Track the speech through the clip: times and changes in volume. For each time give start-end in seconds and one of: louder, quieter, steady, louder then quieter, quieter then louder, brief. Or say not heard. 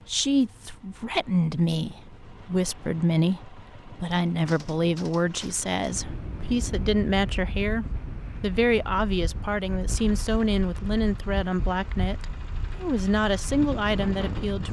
0.1-14.6 steady.